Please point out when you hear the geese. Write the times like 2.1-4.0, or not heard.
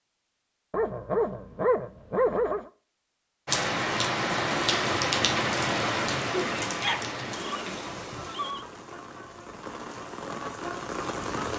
not heard.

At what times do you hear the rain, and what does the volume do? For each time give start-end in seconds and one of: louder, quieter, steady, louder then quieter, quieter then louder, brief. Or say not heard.
3.5-11.5 quieter then louder.